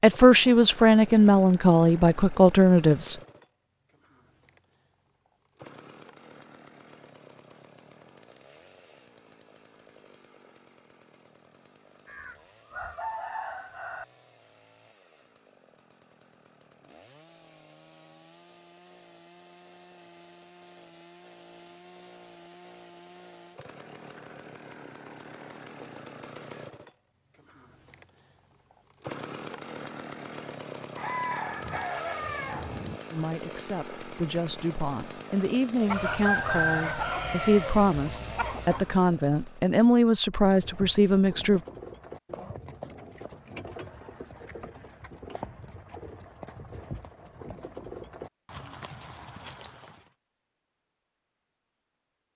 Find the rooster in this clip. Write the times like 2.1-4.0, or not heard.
12.1-14.1, 30.9-33.0, 35.9-38.9.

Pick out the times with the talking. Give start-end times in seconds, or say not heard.
0.0-3.1, 33.1-41.6.